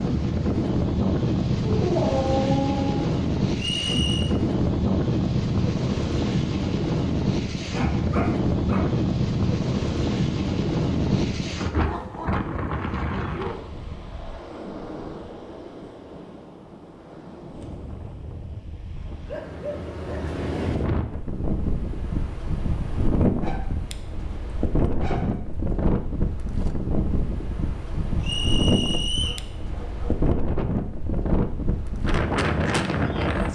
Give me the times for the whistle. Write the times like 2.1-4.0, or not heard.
3.5-4.3, 28.2-29.4.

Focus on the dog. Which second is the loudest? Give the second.
2 s.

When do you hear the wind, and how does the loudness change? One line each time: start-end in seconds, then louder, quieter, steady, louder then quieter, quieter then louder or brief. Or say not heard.
0.0-33.5 quieter then louder.